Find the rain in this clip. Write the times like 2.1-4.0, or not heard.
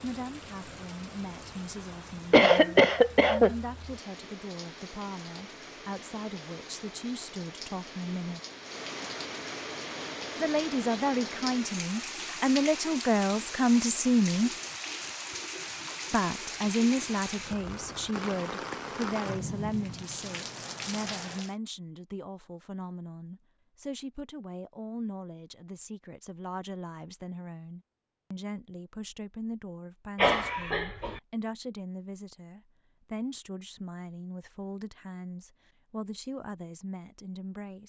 0.0-21.6.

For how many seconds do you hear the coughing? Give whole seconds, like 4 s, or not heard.
2 s.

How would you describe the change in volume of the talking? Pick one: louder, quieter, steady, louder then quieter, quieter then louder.
louder then quieter.